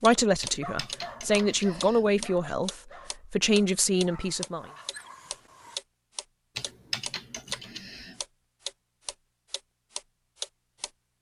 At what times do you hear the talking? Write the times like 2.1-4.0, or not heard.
0.0-4.7.